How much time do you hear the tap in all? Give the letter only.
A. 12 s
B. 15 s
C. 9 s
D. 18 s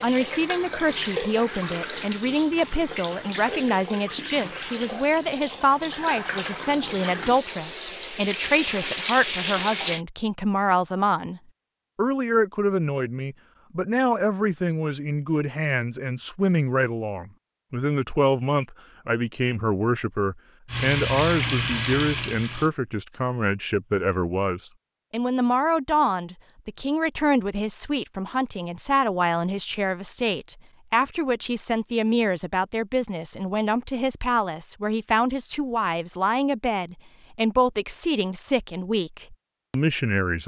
A.